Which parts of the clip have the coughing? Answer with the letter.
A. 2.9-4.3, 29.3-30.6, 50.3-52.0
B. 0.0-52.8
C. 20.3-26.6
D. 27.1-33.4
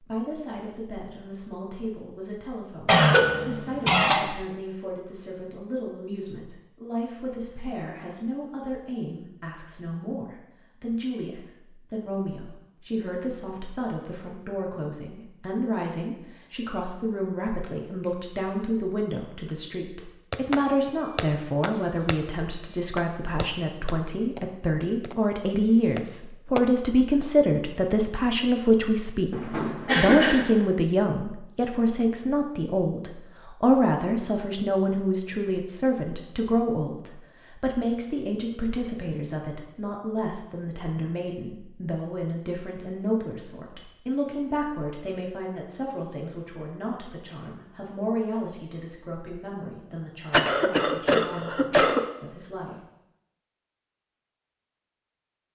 A.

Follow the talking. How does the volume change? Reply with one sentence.
The volume of the talking goes up, then down.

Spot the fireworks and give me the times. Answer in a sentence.
You can hear the fireworks from 20.3 to 26.6 s.